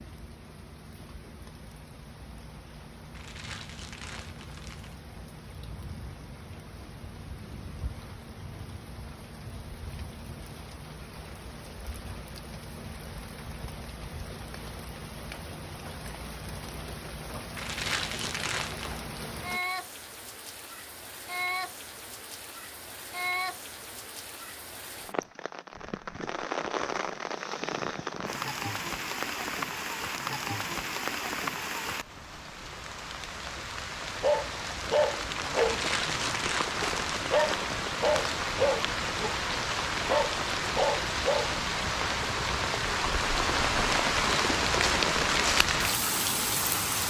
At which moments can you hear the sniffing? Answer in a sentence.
You can't hear the sniffing here.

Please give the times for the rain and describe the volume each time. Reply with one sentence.
You can hear the rain from 0.0 to 47.0 s, getting louder.